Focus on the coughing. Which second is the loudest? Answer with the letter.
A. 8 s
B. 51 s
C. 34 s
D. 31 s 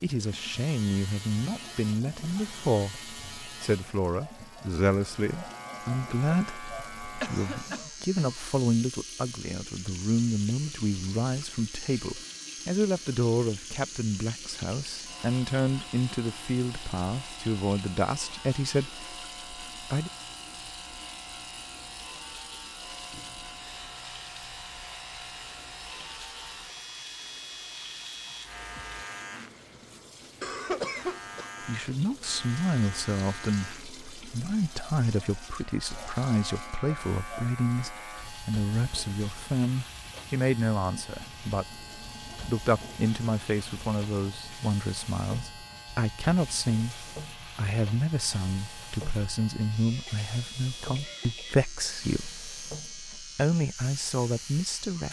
D.